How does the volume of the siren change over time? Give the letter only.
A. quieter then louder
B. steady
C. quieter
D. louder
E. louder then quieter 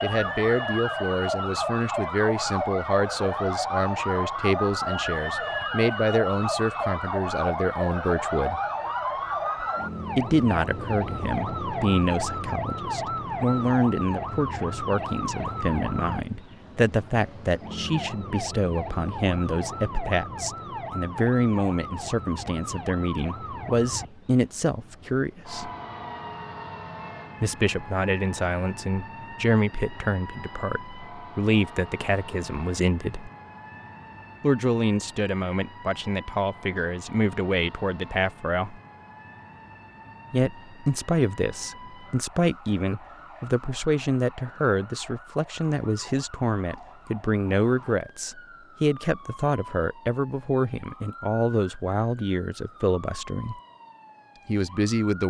C.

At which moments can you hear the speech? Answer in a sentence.
The speech can be heard from 0.0 to 8.6 s, from 10.2 to 25.7 s, from 27.4 to 33.3 s, from 34.4 to 38.8 s, from 40.3 to 53.5 s and from 54.5 to 55.2 s.